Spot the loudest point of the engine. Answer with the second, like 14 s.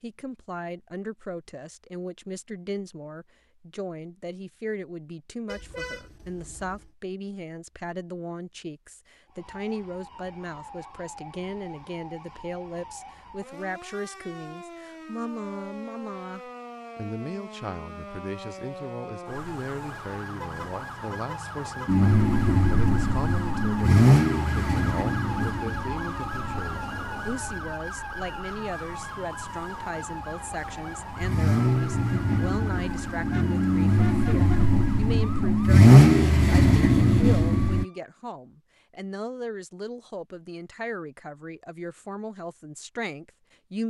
36 s.